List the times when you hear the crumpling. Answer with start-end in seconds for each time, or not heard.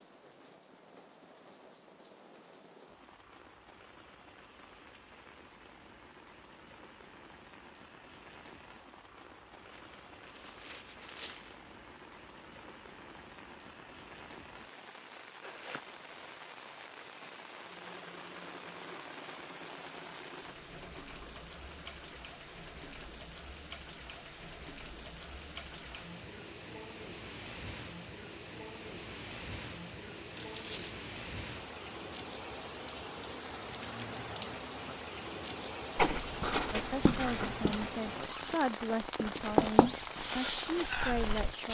9.7-11.6, 15.4-16.4, 30.4-30.9.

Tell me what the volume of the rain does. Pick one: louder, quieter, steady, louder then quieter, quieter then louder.
louder.